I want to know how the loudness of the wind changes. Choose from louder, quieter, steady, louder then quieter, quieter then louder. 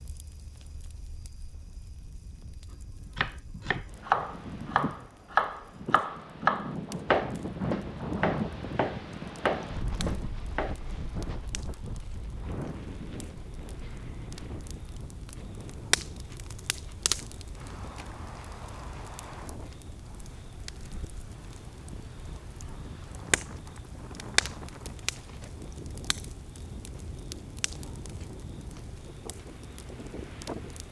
louder then quieter.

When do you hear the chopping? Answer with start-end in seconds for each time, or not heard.
3.0-10.8.